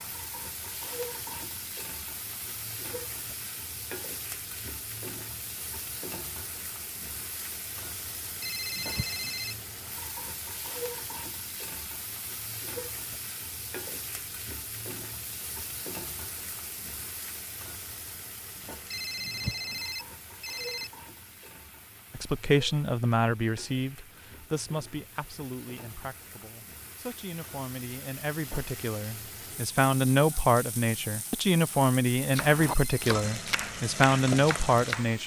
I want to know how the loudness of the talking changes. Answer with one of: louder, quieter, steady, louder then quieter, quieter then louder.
quieter then louder.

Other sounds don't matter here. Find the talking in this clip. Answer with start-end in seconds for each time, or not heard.
22.1-35.2.